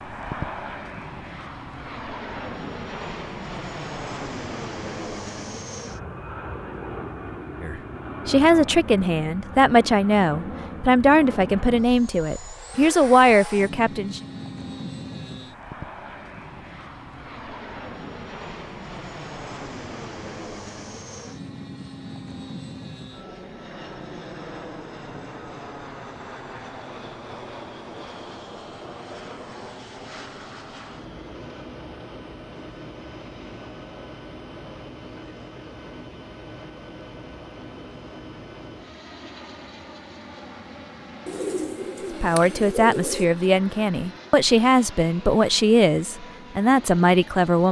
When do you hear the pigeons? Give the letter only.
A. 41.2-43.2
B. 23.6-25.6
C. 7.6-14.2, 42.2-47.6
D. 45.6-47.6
A.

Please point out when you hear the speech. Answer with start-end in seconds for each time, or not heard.
7.6-14.2, 42.2-47.6.